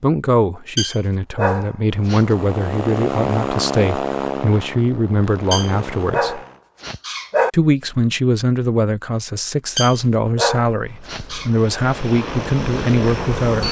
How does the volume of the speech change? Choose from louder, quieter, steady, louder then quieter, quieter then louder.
steady.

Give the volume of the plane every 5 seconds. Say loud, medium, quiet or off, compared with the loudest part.
loud, medium, loud.